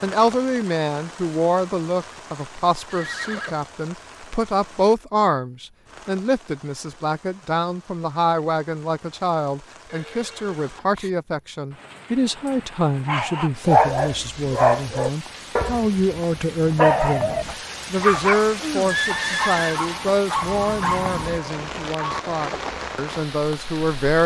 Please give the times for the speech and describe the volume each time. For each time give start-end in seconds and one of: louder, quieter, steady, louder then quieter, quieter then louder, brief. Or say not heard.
0.0-24.2 steady.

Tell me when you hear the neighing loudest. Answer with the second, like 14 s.
19 s.